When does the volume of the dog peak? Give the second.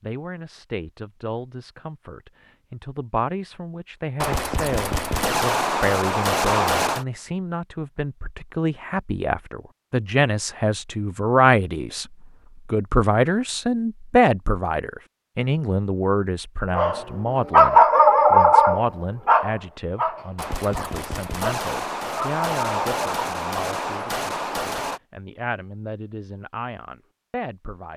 18 s.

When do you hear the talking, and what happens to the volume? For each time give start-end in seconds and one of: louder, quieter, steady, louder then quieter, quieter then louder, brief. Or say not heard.
0.0-12.1 louder
12.7-27.9 quieter.